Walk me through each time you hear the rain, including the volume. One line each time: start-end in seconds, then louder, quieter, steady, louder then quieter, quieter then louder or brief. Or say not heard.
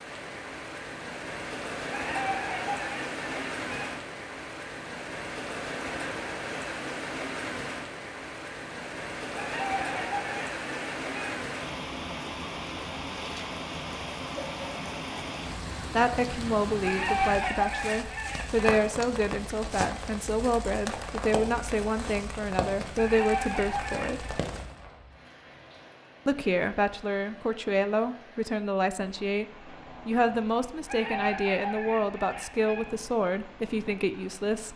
0.0-34.7 quieter.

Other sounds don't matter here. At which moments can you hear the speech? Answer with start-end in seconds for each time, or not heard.
15.9-24.4, 26.2-29.4, 30.1-34.7.